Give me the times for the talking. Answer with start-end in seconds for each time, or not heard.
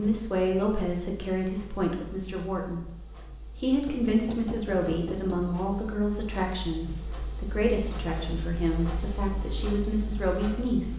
0.0-2.9, 3.6-10.9.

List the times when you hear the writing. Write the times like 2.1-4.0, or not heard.
not heard.